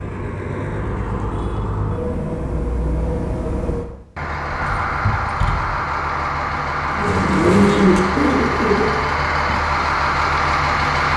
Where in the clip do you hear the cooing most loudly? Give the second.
8 s.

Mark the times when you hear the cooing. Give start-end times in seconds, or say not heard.
6.9-8.9.